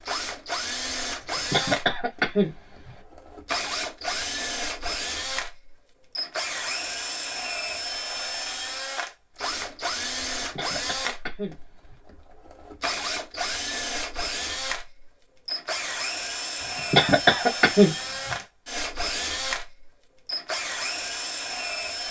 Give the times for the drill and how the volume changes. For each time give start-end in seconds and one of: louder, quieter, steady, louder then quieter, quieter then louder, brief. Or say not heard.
0.0-22.0 steady.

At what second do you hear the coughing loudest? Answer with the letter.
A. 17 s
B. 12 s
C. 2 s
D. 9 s
A.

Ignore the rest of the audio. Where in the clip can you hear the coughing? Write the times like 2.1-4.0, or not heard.
1.2-3.0, 10.6-11.9, 16.6-18.4.